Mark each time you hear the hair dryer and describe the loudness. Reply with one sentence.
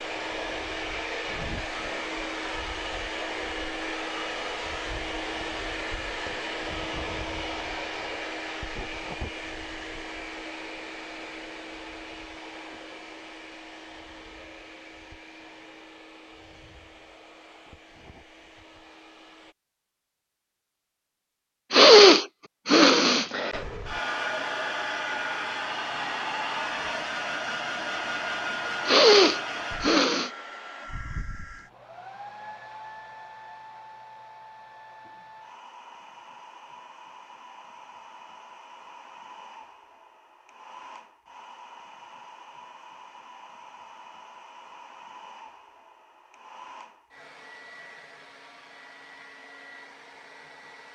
The hair dryer can be heard from 0.0 to 19.6 s, getting quieter; and from 23.5 to 50.9 s, getting quieter.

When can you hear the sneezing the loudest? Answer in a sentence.
The volume of the sneezing peaks at 22 seconds.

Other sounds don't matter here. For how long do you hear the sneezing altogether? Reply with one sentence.
You can hear the sneezing for 3 seconds altogether.